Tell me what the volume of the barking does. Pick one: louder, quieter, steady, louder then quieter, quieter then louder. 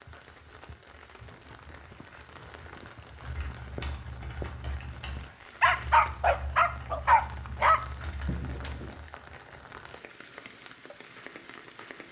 louder.